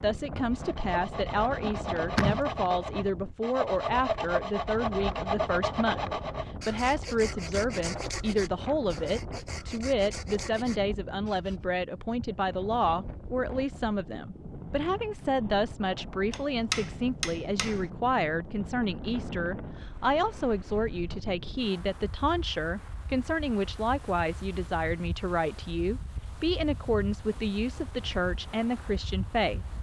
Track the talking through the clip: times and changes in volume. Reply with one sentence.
You can hear the talking from 0.0 to 29.6 s, at a steady volume.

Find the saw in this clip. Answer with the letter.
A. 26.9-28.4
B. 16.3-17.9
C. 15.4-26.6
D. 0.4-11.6
D.